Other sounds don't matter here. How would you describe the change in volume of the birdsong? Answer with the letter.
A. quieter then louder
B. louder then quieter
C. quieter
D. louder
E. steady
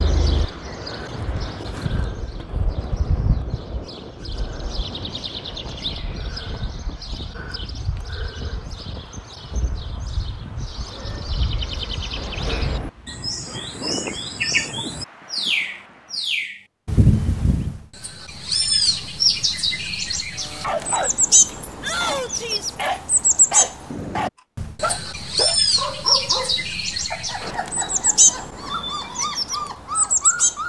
D.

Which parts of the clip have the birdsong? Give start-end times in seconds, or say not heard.
0.0-30.6.